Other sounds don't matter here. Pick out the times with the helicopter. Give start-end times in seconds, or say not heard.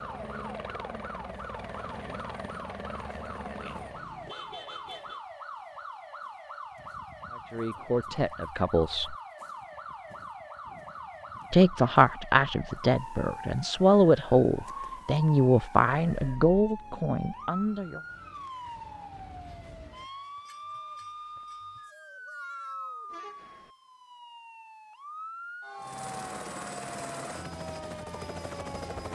0.0-4.0, 25.8-29.0.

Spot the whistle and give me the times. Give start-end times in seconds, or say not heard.
not heard.